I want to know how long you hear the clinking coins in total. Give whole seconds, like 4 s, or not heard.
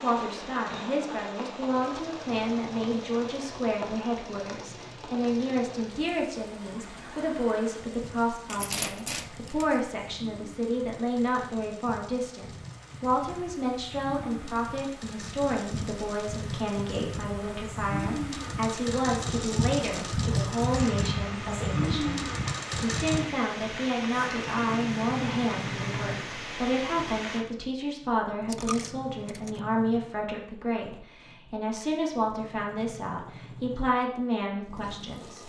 3 s.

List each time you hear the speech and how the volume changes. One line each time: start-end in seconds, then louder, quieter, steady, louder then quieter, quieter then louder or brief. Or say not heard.
0.0-35.4 steady.